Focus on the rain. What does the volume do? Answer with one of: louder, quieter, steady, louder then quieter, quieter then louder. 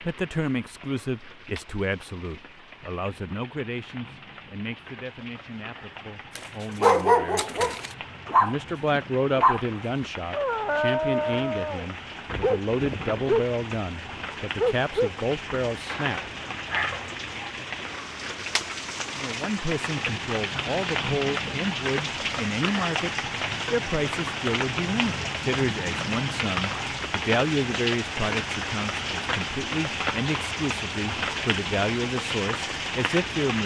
louder.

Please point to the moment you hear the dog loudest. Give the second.
7 s.